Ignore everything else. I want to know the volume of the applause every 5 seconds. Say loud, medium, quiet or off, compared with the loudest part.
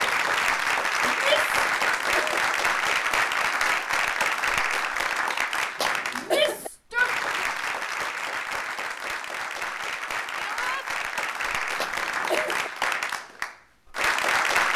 loud, medium, loud.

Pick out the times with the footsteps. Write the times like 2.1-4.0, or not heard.
not heard.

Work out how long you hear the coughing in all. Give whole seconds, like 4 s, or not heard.
3 s.